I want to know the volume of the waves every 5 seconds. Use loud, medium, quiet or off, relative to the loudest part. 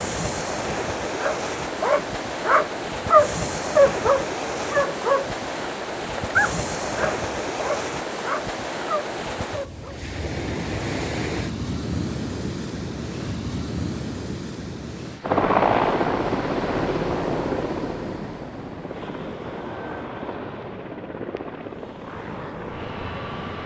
loud, loud, loud, medium, medium.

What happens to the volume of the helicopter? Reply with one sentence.
The volume of the helicopter goes down.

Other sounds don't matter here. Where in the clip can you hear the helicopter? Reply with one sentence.
The helicopter can be heard from 15.2 to 23.6 s.